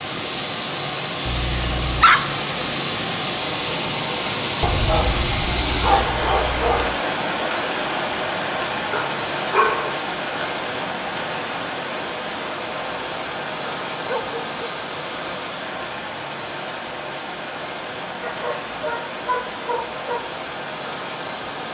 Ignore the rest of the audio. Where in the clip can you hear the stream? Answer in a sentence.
The stream can be heard from 0.0 to 21.6 s.